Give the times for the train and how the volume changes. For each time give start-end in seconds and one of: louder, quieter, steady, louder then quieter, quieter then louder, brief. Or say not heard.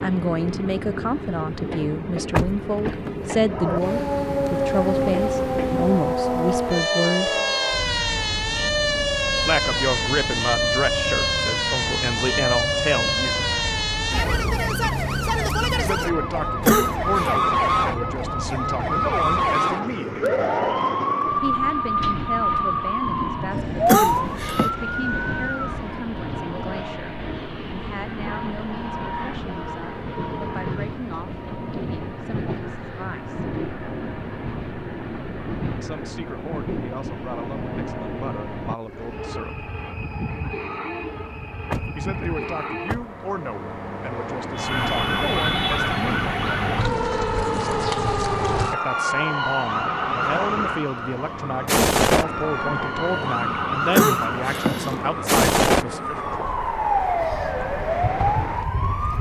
0.0-59.1 steady.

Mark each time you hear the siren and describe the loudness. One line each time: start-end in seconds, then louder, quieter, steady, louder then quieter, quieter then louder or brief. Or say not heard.
3.5-25.9 steady
44.5-59.1 steady.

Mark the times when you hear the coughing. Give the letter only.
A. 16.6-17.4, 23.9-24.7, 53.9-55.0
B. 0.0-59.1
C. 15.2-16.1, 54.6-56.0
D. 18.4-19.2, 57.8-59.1
A.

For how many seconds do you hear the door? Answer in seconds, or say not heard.
2 s.